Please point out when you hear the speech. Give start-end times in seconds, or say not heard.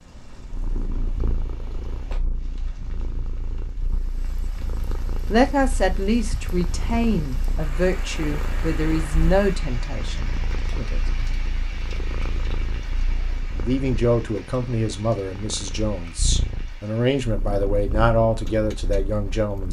5.2-11.2, 13.6-19.6.